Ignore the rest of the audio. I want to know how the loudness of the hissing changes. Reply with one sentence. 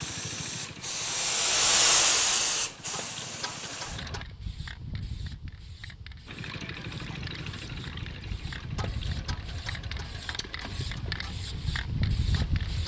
The volume of the hissing goes down, then up.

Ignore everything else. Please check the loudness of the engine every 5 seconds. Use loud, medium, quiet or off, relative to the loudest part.
loud, loud, medium.